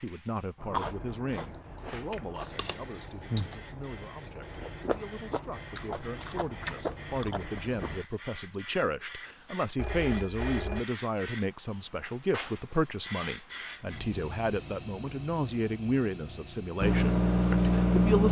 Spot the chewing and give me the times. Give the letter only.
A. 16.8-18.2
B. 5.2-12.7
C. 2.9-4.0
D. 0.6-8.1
D.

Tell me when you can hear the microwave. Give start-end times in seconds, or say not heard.
16.8-18.2.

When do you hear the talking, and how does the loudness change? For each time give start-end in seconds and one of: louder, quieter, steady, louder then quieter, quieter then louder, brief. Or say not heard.
0.0-18.2 louder.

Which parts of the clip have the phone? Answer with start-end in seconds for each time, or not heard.
9.8-10.8.